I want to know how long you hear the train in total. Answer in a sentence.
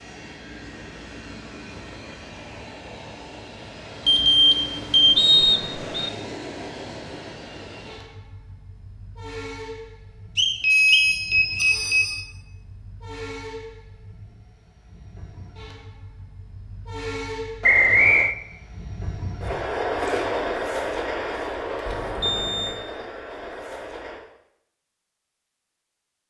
The train can be heard for 24 seconds in total.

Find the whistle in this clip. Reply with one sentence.
You can hear the whistle from 5.2 to 6.1 s, from 10.3 to 11.8 s and from 17.6 to 18.4 s.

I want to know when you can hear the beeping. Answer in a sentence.
You can hear the beeping from 4.0 to 5.2 s, from 10.6 to 12.2 s and from 21.9 to 22.8 s.